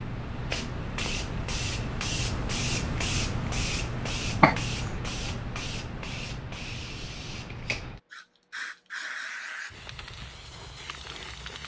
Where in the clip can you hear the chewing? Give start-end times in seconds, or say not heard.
not heard.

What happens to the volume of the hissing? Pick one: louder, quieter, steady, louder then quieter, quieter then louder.
quieter.